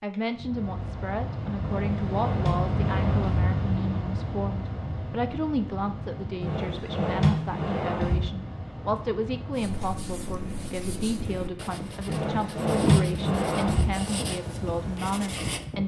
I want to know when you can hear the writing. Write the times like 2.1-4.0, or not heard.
9.5-15.7.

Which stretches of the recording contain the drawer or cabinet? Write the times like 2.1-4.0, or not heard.
1.6-3.4, 6.4-8.3, 12.1-13.9.